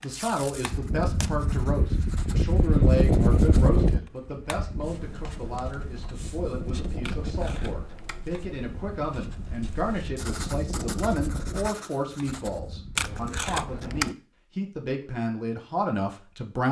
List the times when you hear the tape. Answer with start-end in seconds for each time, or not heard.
0.1-1.3, 7.0-8.2, 12.9-14.2.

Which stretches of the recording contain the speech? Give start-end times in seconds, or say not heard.
0.0-16.6.